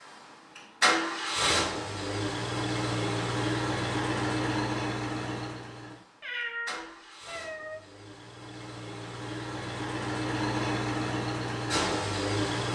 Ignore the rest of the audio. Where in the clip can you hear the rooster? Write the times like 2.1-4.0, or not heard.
not heard.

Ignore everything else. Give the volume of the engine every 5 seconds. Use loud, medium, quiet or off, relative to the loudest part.
loud, medium, loud.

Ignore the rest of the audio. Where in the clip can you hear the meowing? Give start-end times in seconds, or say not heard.
6.2-7.8.